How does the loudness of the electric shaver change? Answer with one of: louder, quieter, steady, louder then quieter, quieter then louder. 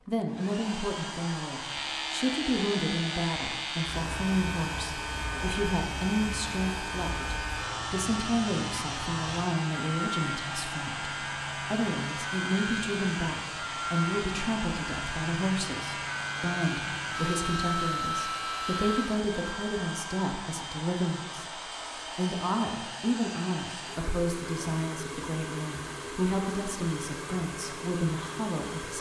steady.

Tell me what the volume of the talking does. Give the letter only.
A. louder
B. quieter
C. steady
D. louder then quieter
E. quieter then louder
C.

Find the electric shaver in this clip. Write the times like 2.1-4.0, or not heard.
1.5-19.2.